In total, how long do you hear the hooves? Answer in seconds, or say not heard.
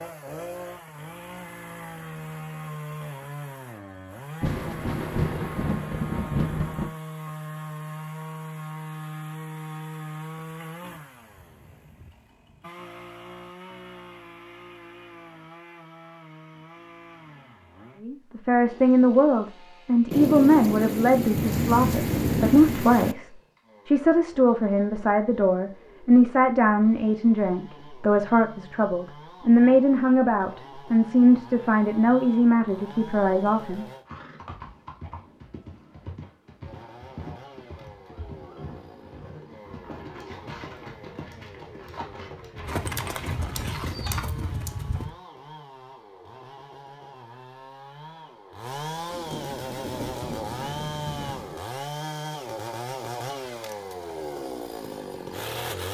11 s.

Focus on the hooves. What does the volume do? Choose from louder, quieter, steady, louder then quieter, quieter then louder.
louder.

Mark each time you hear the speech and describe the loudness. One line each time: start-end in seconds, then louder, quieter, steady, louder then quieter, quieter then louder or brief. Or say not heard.
18.0-33.9 steady.